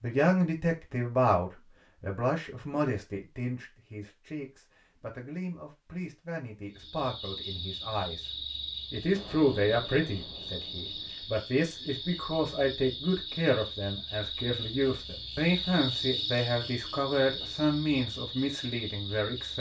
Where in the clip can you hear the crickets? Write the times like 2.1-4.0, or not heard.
6.7-19.5.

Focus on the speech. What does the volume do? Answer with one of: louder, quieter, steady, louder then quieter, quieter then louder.
quieter then louder.